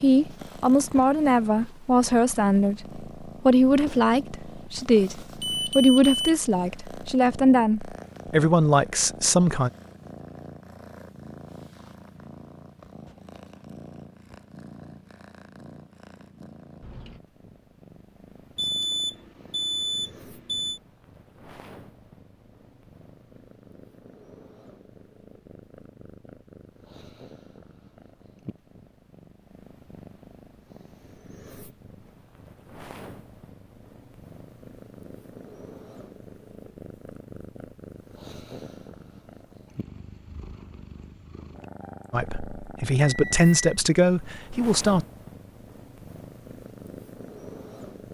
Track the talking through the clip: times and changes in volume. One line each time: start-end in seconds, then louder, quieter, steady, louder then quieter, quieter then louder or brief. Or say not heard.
0.0-9.7 steady
42.1-45.0 brief.